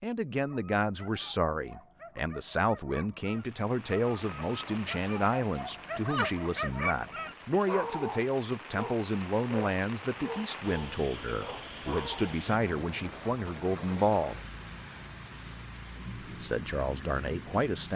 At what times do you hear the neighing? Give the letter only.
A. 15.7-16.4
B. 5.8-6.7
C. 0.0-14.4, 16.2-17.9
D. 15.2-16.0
B.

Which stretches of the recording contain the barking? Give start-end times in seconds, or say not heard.
0.3-12.4.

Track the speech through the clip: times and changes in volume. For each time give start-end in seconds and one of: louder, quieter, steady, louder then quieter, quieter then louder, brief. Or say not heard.
0.0-14.4 steady
16.2-17.9 brief.